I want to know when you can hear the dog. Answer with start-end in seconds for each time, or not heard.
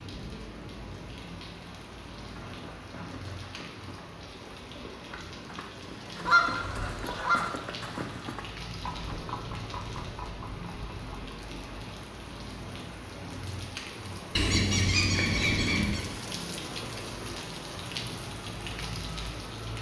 not heard.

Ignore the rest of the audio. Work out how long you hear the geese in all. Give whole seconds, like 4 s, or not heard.
3 s.